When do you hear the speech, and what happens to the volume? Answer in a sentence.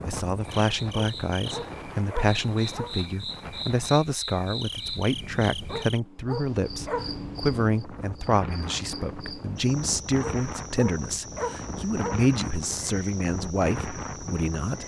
The speech can be heard from 0.0 to 14.8 s, at a steady volume.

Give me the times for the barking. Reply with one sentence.
You can hear the barking from 0.9 to 3.0 s, from 5.7 to 7.1 s and from 10.2 to 12.2 s.